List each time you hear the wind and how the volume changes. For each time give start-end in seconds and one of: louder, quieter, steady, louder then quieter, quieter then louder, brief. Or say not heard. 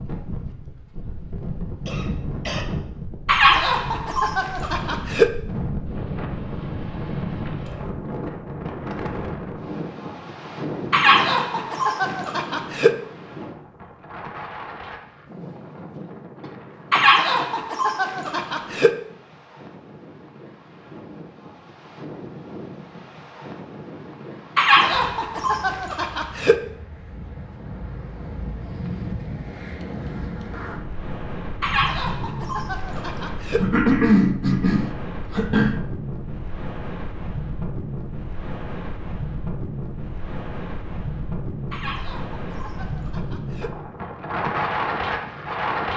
0.0-45.9 quieter then louder.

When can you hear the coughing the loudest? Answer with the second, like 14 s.
34 s.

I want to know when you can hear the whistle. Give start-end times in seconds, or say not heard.
not heard.